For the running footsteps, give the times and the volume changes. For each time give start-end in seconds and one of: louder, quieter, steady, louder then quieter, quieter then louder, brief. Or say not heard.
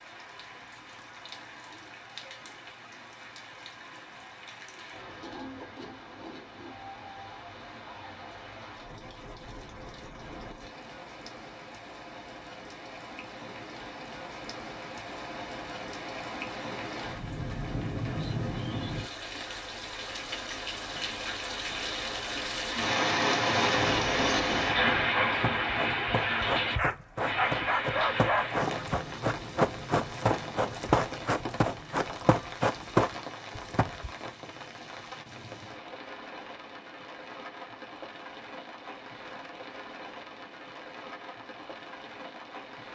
23.7-34.1 louder.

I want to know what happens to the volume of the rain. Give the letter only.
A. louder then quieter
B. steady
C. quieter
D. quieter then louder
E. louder
A.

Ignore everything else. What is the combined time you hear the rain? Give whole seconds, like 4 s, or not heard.
43 s.